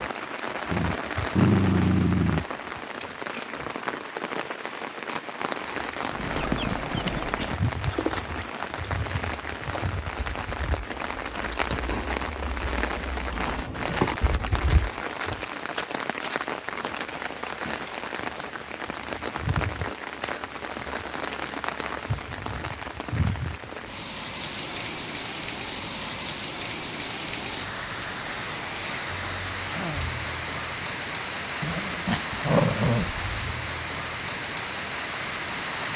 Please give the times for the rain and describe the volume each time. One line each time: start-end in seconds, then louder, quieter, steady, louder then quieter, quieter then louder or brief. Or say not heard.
0.0-35.9 steady.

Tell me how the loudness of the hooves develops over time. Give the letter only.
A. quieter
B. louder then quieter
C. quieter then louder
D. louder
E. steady
C.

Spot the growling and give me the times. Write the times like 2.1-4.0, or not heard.
0.7-2.5, 31.6-33.1.